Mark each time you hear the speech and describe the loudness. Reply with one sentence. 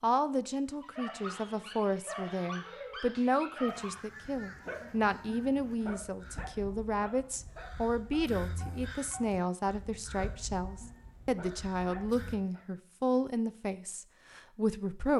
You can hear the speech from 0.0 to 15.1 s, at a steady volume.